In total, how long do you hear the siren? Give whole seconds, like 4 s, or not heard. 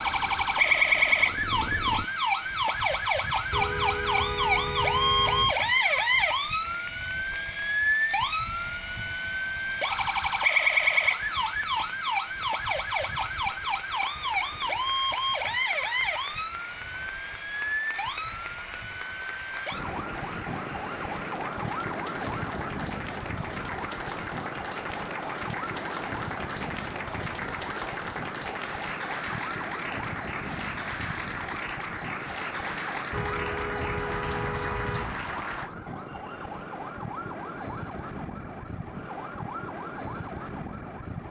41 s.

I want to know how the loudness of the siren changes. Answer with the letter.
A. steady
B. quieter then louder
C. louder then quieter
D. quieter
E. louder
D.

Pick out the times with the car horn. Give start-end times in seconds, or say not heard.
3.5-5.5, 33.1-35.1.